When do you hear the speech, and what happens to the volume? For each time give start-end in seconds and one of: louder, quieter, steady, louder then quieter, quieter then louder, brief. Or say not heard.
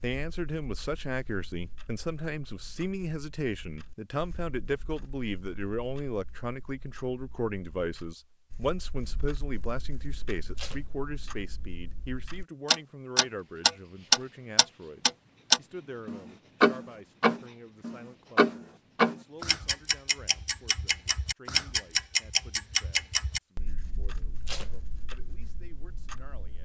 0.0-26.6 quieter.